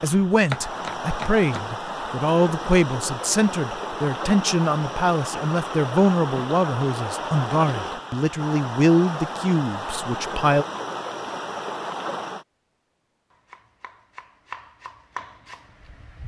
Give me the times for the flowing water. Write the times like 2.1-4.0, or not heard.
0.0-12.4.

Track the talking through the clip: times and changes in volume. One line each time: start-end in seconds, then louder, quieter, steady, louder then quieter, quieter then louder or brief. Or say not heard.
0.0-10.7 steady.